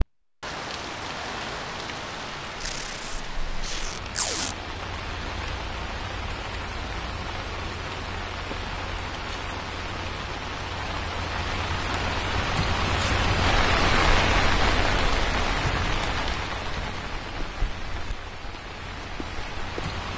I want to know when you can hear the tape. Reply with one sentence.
The tape can be heard from 2.6 to 4.5 s.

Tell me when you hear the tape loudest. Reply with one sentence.
The loudest moment of the tape is at 4 seconds.